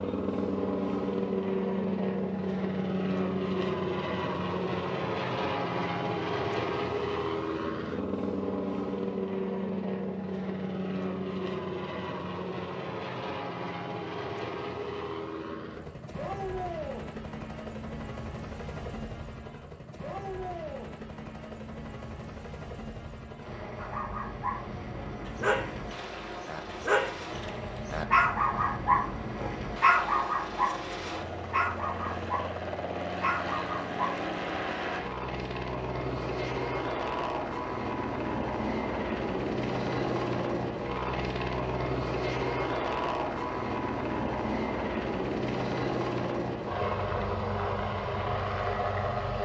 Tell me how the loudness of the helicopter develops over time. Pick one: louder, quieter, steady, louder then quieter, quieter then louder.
quieter then louder.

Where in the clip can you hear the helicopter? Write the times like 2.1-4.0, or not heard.
0.0-49.4.